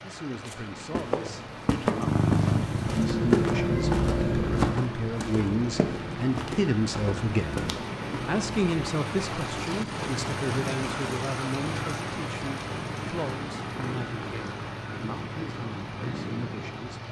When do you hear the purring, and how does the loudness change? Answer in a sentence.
You can hear the purring from 1.9 to 17.0 s, getting quieter.